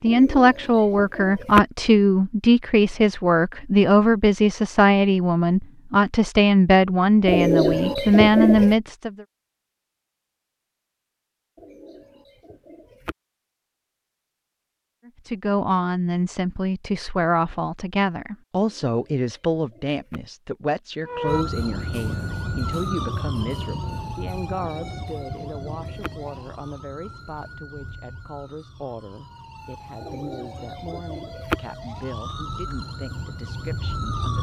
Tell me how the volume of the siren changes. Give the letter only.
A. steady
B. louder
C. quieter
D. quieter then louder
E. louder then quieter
D.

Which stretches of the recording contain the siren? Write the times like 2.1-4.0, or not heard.
21.1-34.3.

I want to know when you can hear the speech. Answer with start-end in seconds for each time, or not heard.
0.0-9.1, 15.2-34.3.